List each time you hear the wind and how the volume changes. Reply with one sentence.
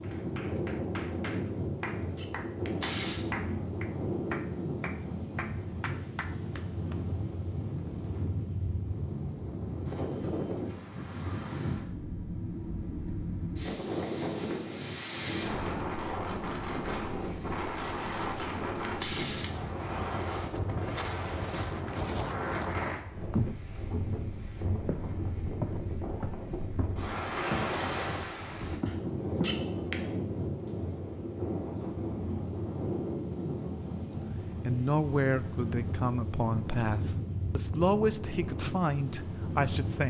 The wind can be heard from 0.0 to 40.0 s, at a steady volume.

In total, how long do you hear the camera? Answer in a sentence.
The camera can be heard for 3 seconds in total.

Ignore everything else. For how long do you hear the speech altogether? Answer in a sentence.
You can hear the speech for 5 seconds altogether.